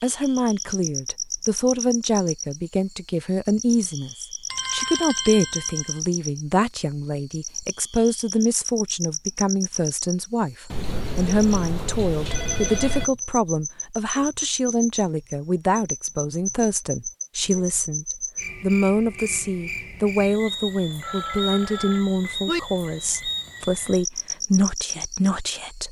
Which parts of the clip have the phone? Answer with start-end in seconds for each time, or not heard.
4.5-6.0, 10.7-13.1, 21.0-22.6.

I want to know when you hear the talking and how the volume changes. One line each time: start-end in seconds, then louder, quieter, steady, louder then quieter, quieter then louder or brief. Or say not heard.
0.0-25.8 steady.